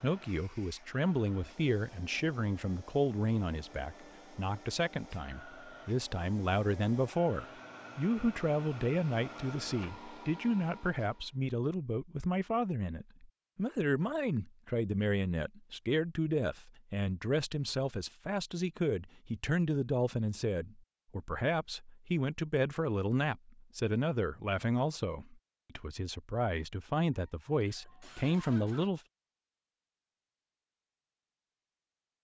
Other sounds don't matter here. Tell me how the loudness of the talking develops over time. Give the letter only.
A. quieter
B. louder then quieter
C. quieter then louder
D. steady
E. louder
D.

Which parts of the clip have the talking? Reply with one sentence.
You can hear the talking from 0.0 to 29.0 s.